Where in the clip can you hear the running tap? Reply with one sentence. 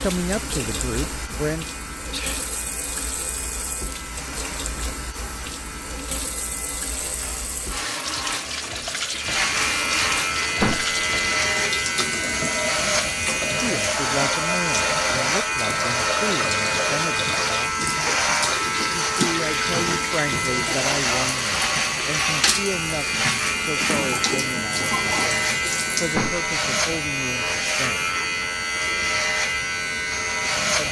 You can hear the running tap from 0.0 to 26.2 s.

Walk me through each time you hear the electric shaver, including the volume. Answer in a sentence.
You can hear the electric shaver from 0.0 to 30.8 s, getting louder.